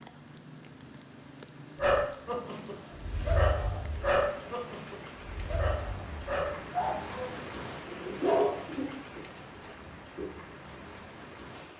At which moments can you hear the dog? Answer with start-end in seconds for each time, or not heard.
1.8-10.3.